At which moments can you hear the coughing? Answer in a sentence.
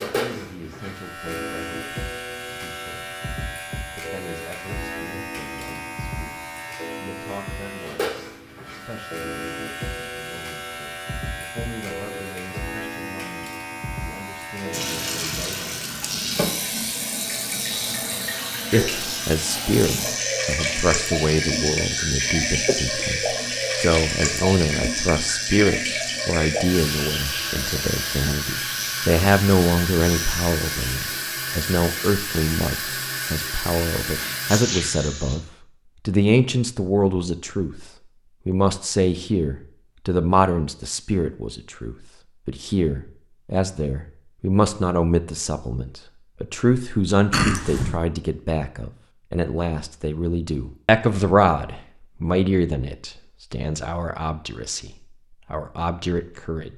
The coughing can be heard from 22.6 to 23.2 s and from 47.3 to 48.0 s.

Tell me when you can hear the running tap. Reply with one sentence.
You can hear the running tap from 14.7 to 35.4 s.